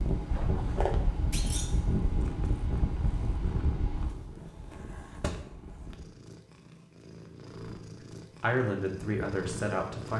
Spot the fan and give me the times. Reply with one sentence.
You can hear the fan from 0.0 to 6.1 s.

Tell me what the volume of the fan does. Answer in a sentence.
The volume of the fan goes down.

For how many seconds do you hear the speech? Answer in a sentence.
You can hear the speech for 2 seconds altogether.